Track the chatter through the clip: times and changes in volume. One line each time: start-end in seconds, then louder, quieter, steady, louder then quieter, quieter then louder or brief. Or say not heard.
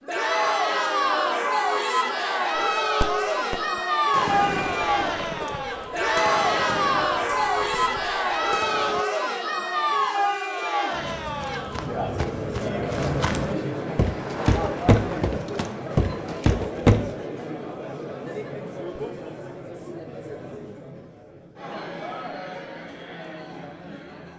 0.1-24.3 quieter.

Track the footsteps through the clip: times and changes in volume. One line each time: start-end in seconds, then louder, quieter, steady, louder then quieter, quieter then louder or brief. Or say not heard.
10.9-17.1 louder.